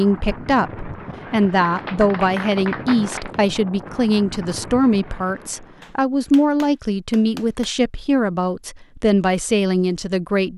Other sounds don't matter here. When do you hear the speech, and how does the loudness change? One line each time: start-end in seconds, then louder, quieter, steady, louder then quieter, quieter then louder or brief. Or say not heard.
0.0-10.5 steady.